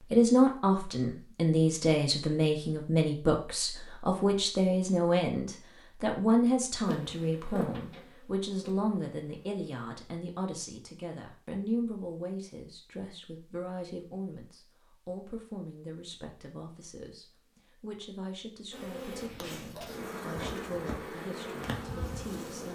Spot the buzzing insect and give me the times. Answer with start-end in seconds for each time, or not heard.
6.8-9.7, 18.7-22.7.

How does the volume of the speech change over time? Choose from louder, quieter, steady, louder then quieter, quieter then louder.
quieter.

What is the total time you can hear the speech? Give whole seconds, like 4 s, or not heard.
23 s.